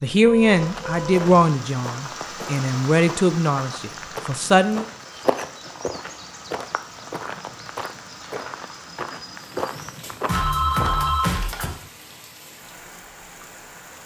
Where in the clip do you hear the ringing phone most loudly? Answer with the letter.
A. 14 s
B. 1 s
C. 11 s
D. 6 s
C.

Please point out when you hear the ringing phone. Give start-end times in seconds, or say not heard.
0.2-1.3, 10.2-11.7.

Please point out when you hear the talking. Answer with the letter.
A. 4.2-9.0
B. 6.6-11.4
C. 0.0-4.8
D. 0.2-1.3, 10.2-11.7
C.